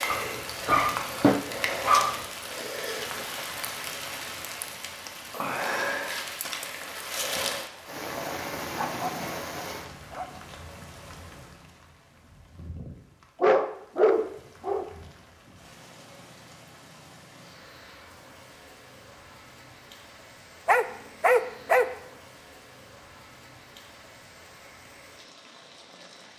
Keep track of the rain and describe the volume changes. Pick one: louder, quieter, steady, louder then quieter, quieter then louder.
quieter.